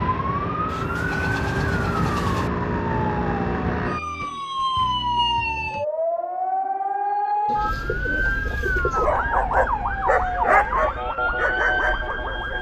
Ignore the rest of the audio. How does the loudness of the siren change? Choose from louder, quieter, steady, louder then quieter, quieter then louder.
steady.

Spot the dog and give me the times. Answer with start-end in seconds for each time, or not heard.
8.9-12.5.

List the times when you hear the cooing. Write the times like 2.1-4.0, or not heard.
0.7-2.5, 7.5-9.1.